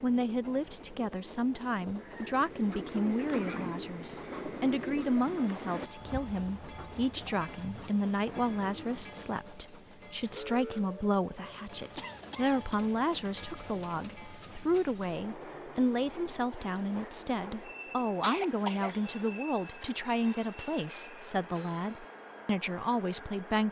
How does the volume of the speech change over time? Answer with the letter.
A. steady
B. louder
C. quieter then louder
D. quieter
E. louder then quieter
A.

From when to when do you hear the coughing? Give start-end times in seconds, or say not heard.
3.3-3.8, 11.9-12.8, 18.2-18.9.